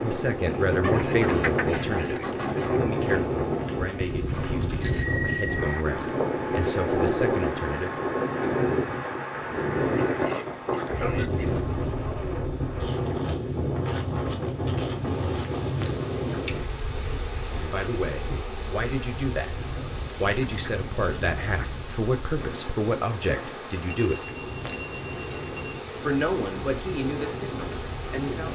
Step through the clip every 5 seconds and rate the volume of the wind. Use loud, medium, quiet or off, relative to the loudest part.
loud, loud, loud, medium, quiet, medium.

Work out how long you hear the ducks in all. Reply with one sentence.
You can hear the ducks for 5 seconds altogether.